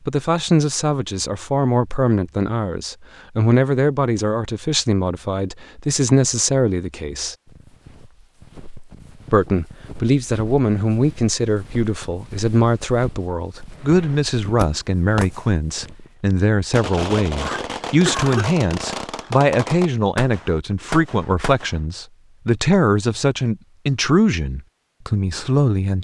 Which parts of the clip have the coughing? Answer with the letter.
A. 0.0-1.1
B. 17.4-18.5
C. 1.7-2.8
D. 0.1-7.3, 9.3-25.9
B.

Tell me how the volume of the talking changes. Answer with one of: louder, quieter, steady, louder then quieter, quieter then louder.
steady.